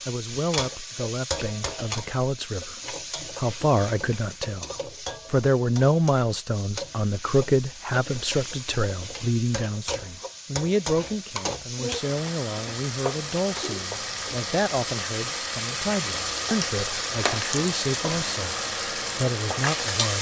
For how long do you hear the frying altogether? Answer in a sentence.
The frying can be heard for 20 seconds in total.